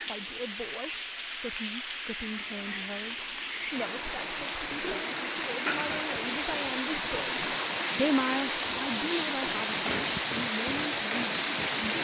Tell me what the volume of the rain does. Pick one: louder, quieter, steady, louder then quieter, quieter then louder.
louder.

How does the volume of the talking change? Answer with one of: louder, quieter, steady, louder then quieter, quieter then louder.
louder then quieter.